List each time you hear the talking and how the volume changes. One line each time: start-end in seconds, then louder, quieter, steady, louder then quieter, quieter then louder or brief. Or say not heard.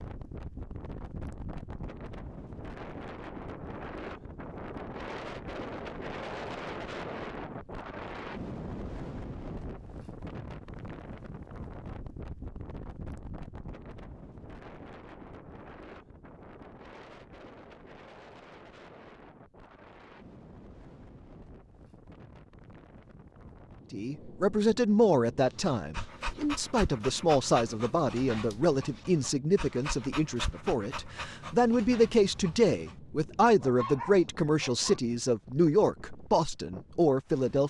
23.9-37.6 steady.